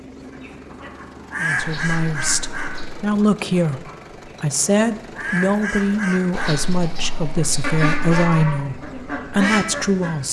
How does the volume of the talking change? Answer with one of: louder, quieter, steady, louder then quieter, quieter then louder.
steady.